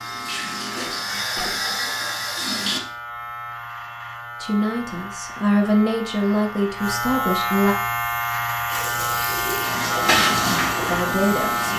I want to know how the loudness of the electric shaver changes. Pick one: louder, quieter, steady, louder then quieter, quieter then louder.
louder.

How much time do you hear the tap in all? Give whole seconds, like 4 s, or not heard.
6 s.